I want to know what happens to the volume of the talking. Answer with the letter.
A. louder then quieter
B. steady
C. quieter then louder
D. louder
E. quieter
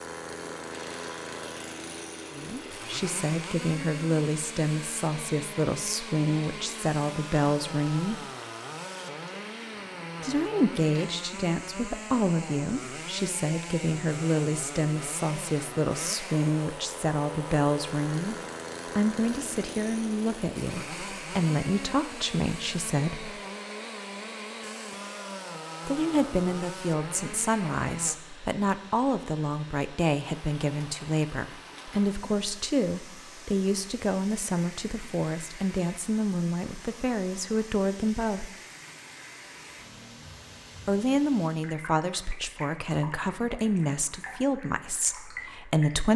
B.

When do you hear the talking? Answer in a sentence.
The talking can be heard from 2.3 to 8.2 s, from 10.2 to 18.4 s, from 18.9 to 23.4 s, from 25.9 to 38.5 s and from 40.9 to 46.1 s.